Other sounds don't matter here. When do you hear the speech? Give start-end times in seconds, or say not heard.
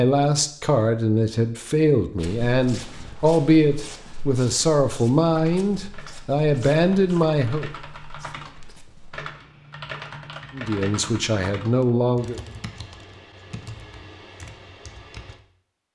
0.0-7.7, 10.5-12.4.